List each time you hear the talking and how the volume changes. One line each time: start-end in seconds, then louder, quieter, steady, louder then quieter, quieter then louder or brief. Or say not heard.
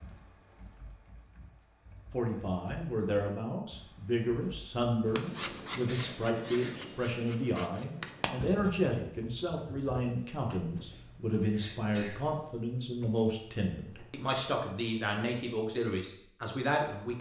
2.1-17.1 steady.